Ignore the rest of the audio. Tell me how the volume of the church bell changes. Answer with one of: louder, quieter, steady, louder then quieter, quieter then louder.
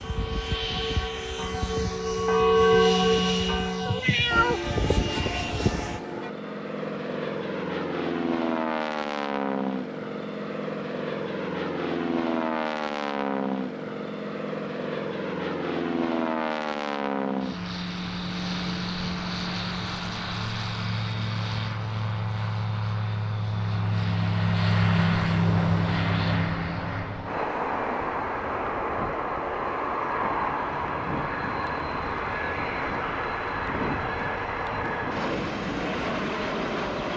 louder then quieter.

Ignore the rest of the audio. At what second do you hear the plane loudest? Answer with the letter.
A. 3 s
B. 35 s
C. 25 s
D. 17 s
C.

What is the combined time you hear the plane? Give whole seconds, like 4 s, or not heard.
37 s.